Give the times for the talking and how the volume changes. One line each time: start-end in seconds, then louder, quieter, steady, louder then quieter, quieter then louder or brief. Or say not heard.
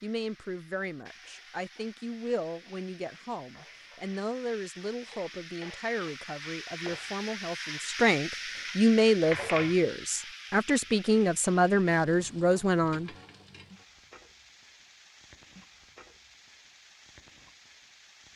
0.0-13.1 louder.